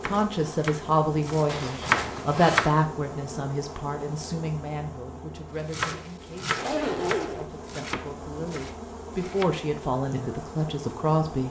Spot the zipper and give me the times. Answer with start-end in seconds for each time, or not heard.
1.4-2.7, 6.5-7.5.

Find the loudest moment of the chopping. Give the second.
2 s.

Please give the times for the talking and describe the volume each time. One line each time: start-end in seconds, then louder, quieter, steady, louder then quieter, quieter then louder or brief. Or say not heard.
0.0-11.4 quieter then louder.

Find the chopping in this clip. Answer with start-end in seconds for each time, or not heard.
0.0-2.8, 5.7-9.7.